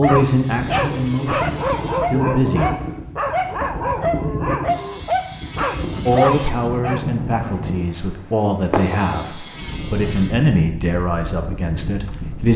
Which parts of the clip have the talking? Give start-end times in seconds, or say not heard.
0.0-2.7, 6.0-12.5.